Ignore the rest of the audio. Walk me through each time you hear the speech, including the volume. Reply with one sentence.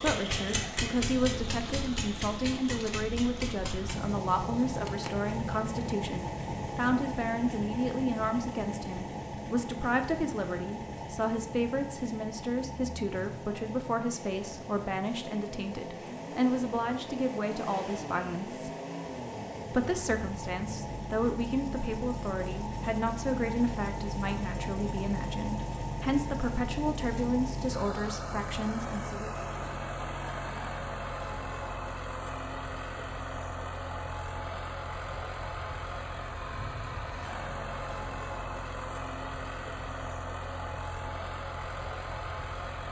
You can hear the speech from 0.0 to 18.7 s, at a steady volume; and from 19.7 to 29.3 s, at a steady volume.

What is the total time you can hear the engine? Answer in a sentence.
The engine can be heard for 43 seconds in total.